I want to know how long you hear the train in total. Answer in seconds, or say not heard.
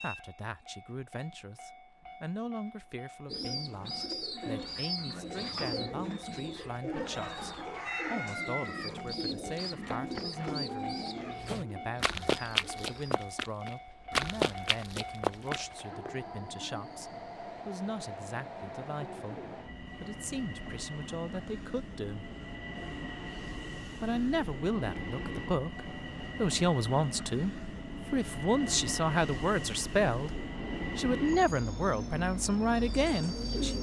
34 s.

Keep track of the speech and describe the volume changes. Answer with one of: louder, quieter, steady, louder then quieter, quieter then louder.
louder.